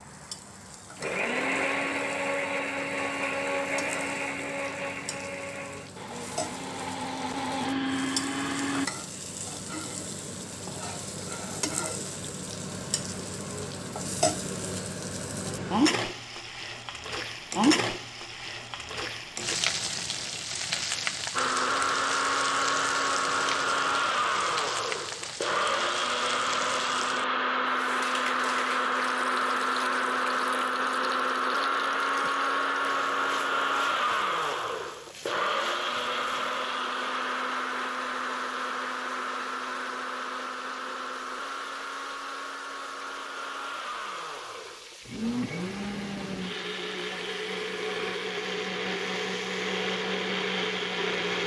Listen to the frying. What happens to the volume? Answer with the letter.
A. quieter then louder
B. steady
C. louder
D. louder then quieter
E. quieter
D.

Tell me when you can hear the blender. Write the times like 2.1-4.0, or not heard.
0.0-8.9, 21.3-51.4.